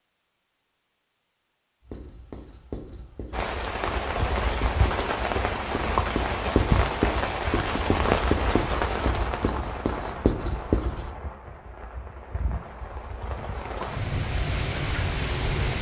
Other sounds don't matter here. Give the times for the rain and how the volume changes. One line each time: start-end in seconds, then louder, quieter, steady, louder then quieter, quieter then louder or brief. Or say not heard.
3.3-15.7 quieter then louder.